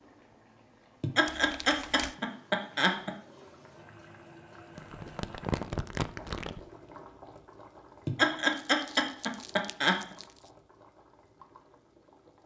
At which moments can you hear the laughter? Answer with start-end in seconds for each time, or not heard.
1.0-3.1, 8.1-10.0.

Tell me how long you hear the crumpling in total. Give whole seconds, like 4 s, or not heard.
5 s.